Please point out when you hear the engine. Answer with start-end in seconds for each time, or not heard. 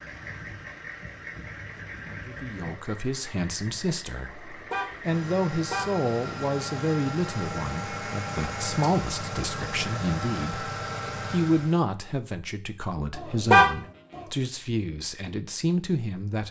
0.0-11.8.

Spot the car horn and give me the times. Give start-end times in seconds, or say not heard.
4.3-6.0, 13.2-14.2.